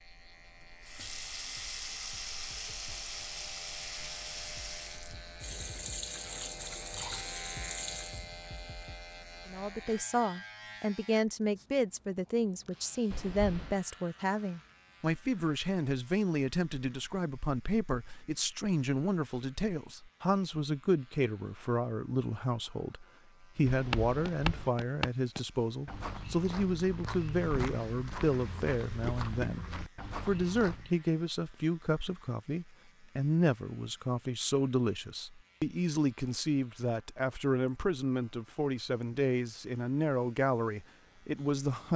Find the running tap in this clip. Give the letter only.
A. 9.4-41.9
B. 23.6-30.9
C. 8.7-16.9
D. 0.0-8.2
D.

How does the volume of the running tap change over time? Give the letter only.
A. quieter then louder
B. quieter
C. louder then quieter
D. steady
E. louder
D.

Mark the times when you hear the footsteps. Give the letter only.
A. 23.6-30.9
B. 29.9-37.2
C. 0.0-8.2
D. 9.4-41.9
A.